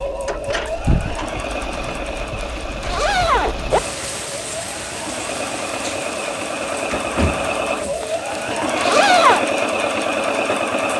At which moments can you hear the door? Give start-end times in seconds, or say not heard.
0.2-1.3, 6.9-8.1.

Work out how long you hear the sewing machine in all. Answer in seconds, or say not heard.
11 s.